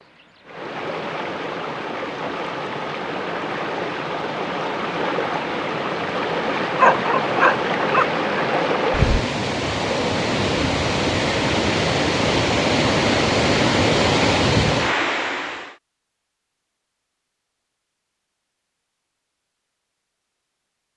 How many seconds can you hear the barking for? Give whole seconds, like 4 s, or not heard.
2 s.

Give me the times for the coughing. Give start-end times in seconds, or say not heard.
not heard.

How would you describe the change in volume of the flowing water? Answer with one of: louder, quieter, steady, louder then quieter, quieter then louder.
louder.